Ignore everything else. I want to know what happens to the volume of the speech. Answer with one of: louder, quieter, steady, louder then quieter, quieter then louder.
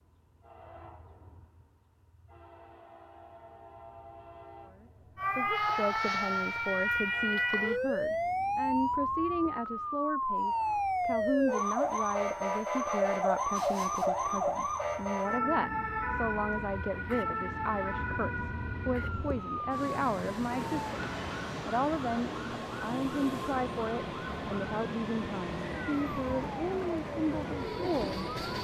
steady.